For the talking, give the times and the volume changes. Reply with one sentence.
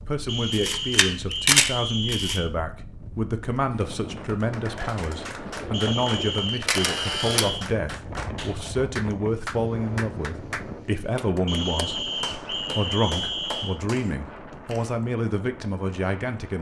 The talking can be heard from 0.0 to 16.5 s, at a steady volume.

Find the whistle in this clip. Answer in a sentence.
You can hear the whistle from 0.2 to 2.5 s, from 5.7 to 7.7 s and from 11.4 to 13.8 s.